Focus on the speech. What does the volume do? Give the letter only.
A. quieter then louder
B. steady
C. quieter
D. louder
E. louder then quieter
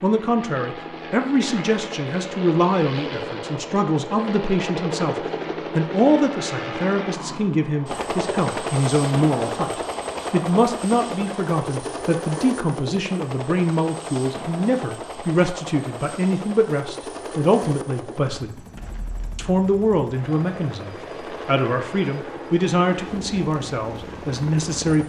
B.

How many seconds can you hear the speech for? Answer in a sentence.
The speech can be heard for 24 seconds in total.